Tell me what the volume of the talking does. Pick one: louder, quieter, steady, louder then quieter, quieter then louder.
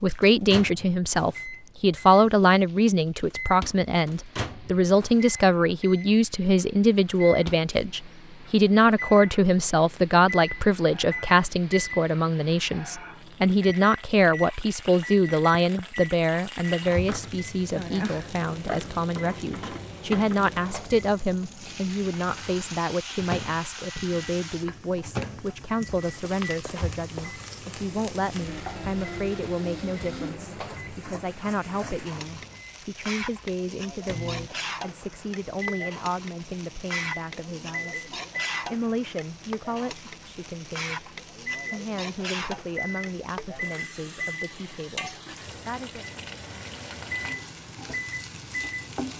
quieter.